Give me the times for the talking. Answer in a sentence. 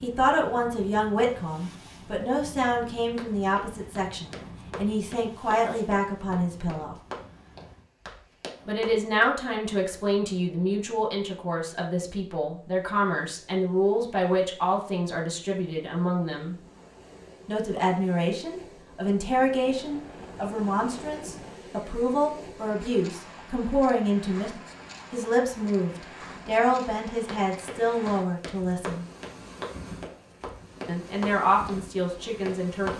The talking can be heard from 0.0 to 7.0 s, from 8.7 to 16.6 s, from 17.4 to 29.1 s and from 30.9 to 32.9 s.